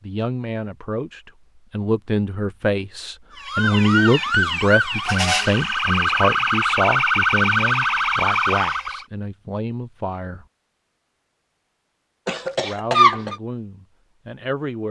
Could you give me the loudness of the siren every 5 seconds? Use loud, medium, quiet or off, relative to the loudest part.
loud, loud, off.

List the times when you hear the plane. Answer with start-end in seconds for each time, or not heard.
not heard.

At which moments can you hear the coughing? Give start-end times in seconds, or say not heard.
12.2-13.3.